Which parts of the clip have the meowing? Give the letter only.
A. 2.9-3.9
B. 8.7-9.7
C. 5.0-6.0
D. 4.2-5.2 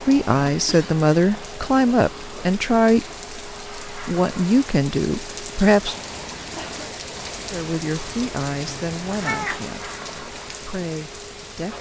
B.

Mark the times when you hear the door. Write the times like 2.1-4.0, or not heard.
not heard.